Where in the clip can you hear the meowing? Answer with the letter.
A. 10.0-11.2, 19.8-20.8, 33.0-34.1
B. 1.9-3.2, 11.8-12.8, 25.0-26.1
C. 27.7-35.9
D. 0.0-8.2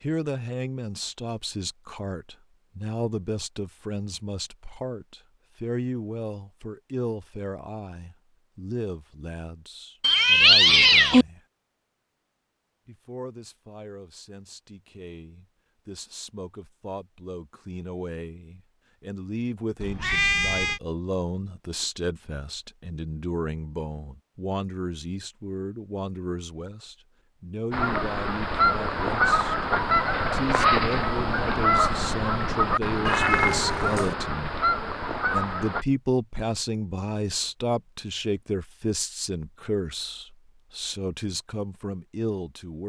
A.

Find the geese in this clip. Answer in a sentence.
You can hear the geese from 27.7 to 35.9 s.